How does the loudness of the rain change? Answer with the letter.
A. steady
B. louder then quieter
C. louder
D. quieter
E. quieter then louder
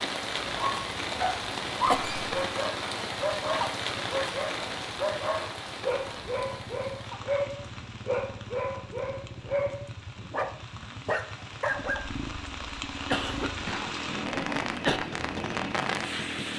E.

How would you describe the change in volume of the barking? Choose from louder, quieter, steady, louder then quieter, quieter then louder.
steady.